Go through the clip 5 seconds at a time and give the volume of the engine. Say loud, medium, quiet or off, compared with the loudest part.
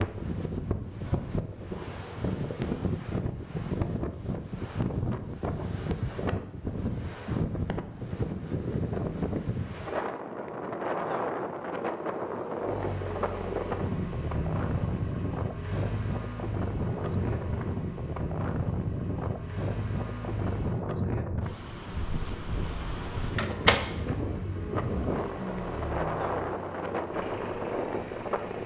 off, off, loud, loud, loud, loud.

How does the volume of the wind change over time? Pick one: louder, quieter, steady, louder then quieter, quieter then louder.
steady.